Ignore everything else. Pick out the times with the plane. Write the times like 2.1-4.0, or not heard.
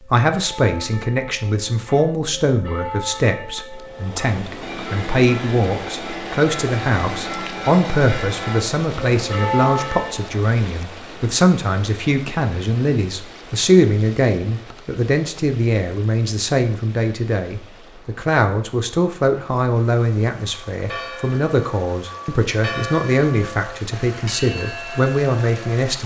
not heard.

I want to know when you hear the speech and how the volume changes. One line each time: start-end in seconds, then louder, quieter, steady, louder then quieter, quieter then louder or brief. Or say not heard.
0.1-26.0 steady.